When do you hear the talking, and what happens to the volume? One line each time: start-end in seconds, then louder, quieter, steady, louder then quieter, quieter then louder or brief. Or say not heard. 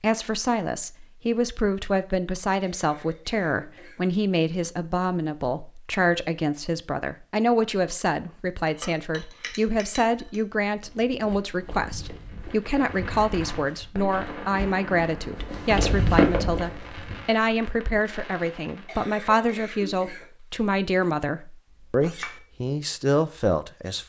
0.0-24.0 steady.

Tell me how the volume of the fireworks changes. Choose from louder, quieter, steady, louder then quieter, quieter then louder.
louder then quieter.